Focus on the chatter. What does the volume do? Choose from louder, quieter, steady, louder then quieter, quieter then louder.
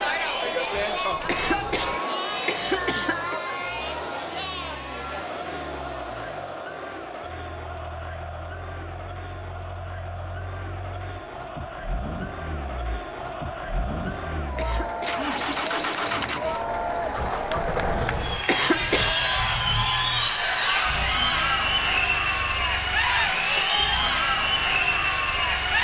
quieter then louder.